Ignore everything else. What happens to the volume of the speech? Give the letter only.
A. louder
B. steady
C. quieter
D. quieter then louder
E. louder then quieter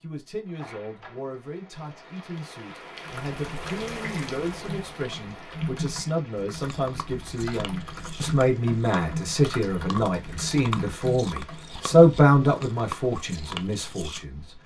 A.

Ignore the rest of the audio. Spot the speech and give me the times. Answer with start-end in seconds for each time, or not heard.
0.0-14.4.